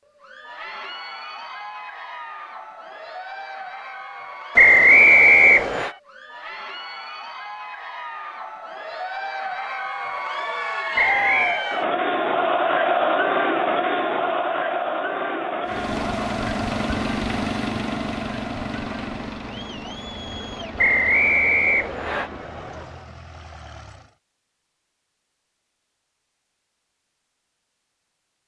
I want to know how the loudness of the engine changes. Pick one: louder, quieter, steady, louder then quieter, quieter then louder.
quieter.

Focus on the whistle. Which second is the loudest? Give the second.
5 s.